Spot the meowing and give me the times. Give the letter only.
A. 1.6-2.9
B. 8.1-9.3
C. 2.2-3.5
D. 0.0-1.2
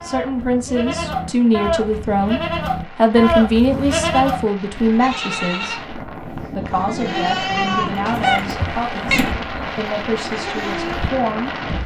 B.